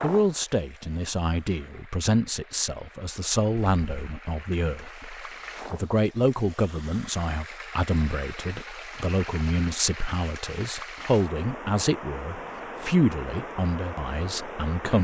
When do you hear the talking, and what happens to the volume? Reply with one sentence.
The talking can be heard from 0.0 to 14.9 s, at a steady volume.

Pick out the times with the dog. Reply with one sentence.
The dog can't be heard in this clip.